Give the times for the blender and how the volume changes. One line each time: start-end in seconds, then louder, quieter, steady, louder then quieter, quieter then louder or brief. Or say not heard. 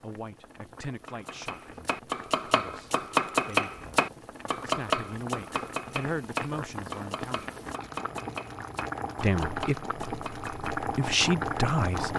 not heard.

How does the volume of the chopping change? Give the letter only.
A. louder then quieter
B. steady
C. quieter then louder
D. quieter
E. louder
D.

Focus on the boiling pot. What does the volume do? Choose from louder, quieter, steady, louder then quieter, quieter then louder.
louder.